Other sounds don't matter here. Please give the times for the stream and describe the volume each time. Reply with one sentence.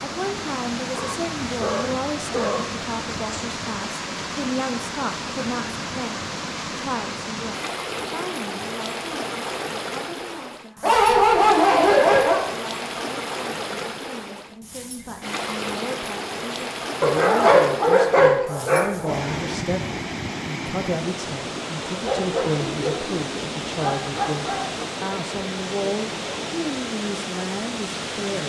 You can hear the stream from 0.0 to 28.4 s, at a steady volume.